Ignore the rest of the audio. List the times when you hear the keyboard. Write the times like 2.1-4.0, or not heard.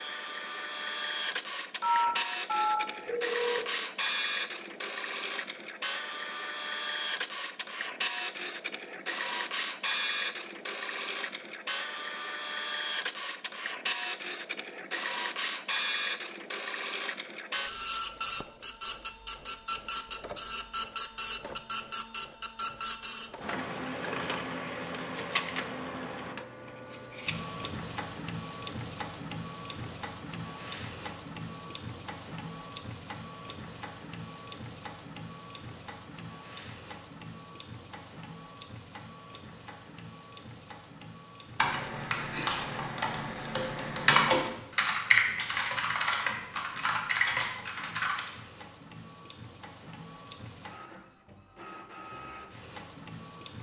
41.5-48.2.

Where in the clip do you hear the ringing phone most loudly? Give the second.
2 s.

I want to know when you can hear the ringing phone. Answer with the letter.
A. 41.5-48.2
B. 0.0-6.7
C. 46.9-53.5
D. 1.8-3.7
D.